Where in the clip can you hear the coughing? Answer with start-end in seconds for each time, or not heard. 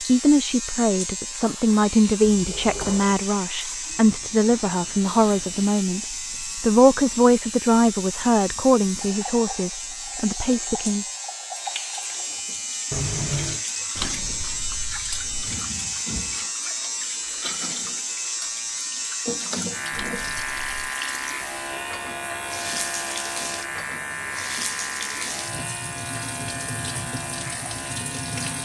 12.9-13.7.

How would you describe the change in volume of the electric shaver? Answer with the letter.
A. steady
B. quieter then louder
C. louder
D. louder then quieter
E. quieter
A.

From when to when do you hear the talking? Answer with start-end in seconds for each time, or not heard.
0.0-11.1.